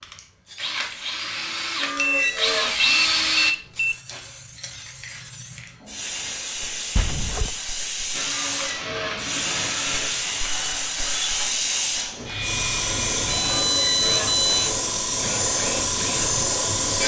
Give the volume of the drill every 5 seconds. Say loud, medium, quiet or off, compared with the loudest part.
loud, medium, medium, medium.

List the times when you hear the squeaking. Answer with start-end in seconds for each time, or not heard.
1.8-2.8, 8.2-9.2, 13.4-14.4.